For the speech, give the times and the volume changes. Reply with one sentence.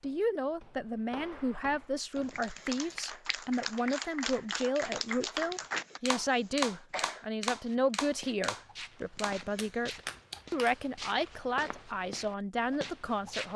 The speech can be heard from 0.0 to 13.5 s, at a steady volume.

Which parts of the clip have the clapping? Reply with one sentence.
You can hear the clapping from 2.1 to 10.8 s.